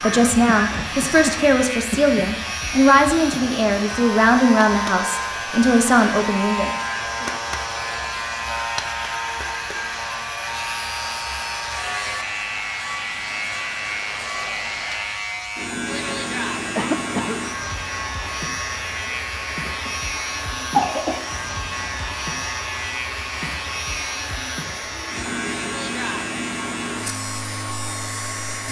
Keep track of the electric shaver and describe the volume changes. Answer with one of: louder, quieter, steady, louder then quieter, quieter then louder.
steady.